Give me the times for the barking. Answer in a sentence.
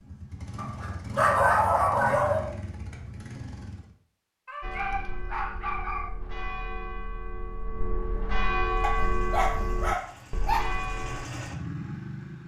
The barking can be heard from 0.6 to 2.5 s, from 4.5 to 6.1 s and from 8.8 to 10.7 s.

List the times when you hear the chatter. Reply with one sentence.
You can't hear the chatter here.